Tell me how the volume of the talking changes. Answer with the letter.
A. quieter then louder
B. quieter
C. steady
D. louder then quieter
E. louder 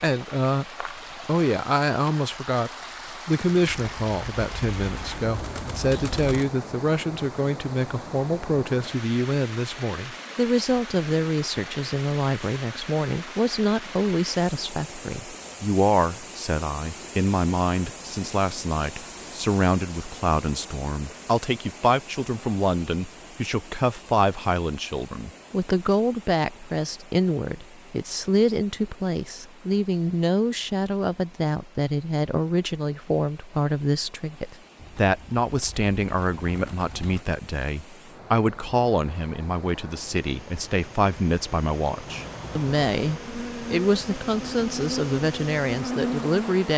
C.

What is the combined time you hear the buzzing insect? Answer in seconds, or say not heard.
5 s.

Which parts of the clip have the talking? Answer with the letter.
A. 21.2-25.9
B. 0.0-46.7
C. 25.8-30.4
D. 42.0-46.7
B.